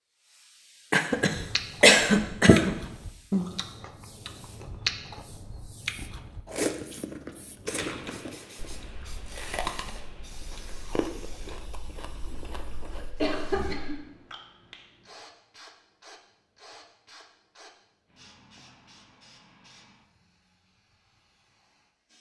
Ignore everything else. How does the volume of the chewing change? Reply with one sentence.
The volume of the chewing goes down.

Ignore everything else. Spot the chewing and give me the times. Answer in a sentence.
You can hear the chewing from 1.1 to 13.1 s.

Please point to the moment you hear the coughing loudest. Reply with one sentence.
The volume of the coughing peaks at 2 seconds.